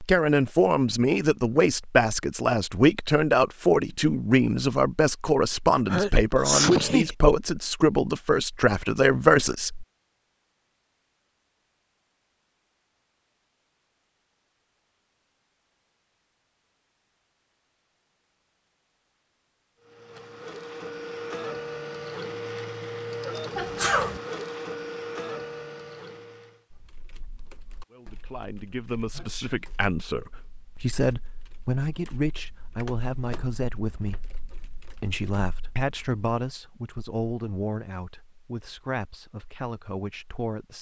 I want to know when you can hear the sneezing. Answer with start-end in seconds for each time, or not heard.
5.8-7.1, 23.6-24.2, 29.1-29.6.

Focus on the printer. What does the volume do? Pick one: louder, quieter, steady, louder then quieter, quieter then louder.
steady.